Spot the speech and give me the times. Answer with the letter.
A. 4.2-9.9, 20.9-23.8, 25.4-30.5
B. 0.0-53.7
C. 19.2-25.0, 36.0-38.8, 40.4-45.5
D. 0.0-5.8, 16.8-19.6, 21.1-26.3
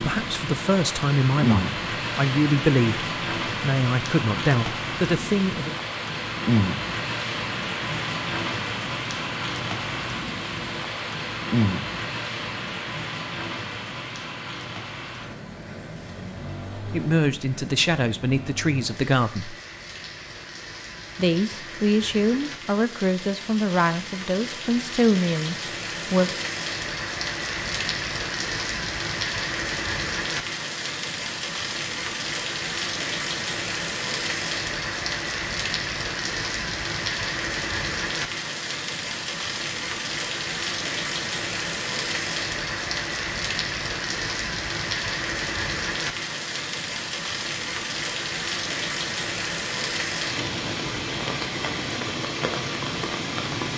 D.